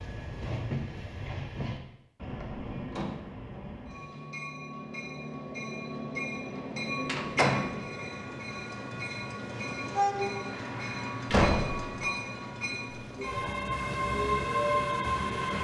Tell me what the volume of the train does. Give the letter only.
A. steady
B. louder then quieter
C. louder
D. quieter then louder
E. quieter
C.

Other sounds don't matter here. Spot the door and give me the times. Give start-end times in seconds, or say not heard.
2.2-3.1, 7.0-7.7, 11.3-11.9.